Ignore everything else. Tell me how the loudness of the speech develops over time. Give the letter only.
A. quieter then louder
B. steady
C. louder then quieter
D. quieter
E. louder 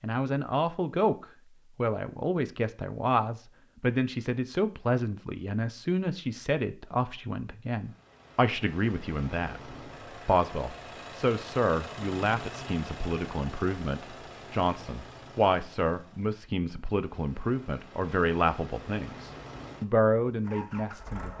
B.